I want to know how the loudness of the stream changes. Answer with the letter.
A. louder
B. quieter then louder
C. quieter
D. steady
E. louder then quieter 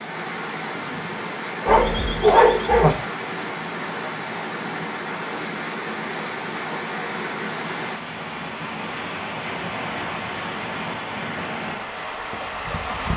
D.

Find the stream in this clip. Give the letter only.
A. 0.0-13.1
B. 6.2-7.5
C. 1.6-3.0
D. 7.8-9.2
A.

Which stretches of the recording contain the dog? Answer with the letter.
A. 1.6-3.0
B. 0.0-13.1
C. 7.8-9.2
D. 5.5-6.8
A.